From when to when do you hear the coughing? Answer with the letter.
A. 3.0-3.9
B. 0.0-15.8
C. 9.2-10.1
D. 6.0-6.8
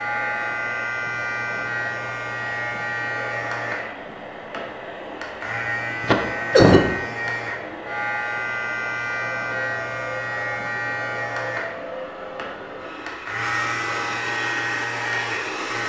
D.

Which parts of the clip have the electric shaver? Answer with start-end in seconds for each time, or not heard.
0.0-15.8.